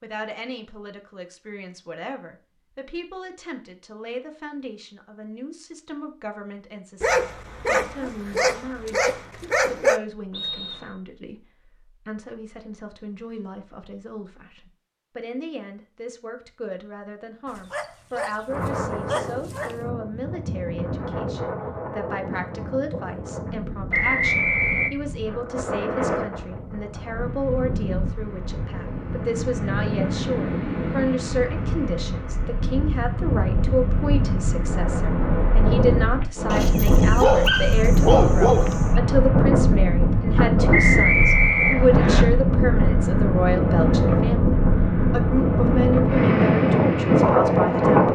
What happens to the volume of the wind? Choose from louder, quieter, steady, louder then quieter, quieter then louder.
louder.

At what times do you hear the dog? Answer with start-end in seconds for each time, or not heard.
7.0-10.0, 17.4-19.8, 36.5-39.0.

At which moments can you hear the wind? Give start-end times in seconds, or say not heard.
18.4-48.1.